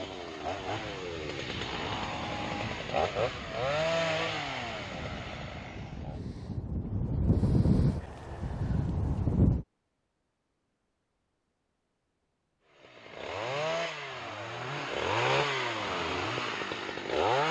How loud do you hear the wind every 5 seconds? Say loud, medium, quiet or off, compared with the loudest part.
quiet, loud, off, off.